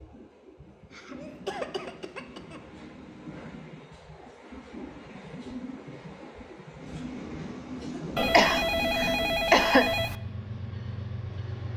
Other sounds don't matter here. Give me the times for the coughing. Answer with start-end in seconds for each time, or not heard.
0.9-2.6, 8.3-9.9.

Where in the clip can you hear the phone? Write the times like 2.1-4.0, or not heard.
8.2-10.2.